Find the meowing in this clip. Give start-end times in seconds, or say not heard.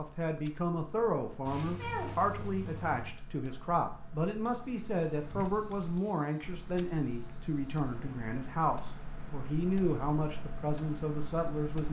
1.4-3.1.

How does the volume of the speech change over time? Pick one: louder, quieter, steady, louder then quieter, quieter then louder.
steady.